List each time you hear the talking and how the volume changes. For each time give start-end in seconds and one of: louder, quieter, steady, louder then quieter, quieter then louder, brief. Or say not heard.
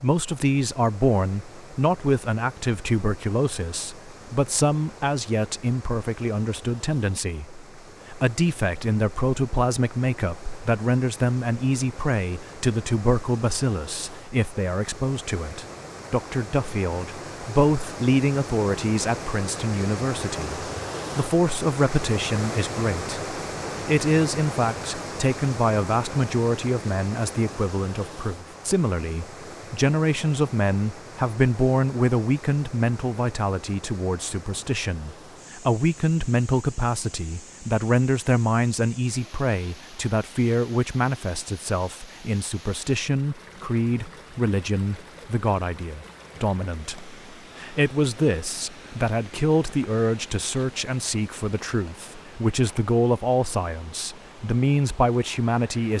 0.0-55.9 steady.